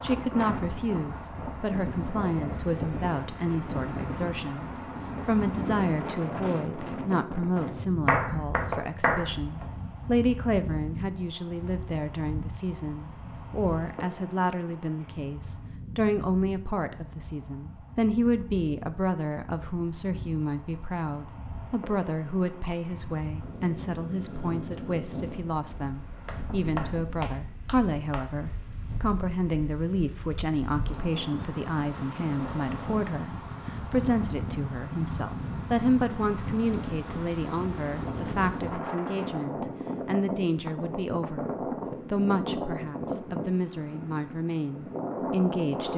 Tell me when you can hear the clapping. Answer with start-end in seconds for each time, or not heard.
8.1-9.7, 26.2-28.2.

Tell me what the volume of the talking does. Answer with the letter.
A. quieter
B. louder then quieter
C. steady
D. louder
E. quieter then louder
C.